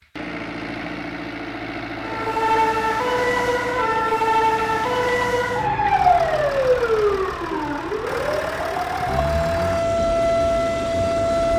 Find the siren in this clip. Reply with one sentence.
The siren can be heard from 2.0 to 11.5 s.